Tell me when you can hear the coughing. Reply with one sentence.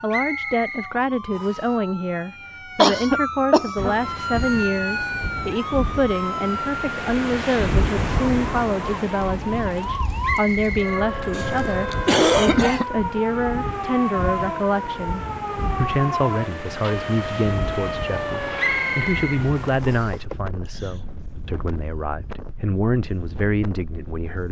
The coughing can be heard from 2.8 to 4.0 s, from 11.3 to 12.8 s and from 20.1 to 21.0 s.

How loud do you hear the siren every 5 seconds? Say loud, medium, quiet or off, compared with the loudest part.
loud, loud, loud, loud, off.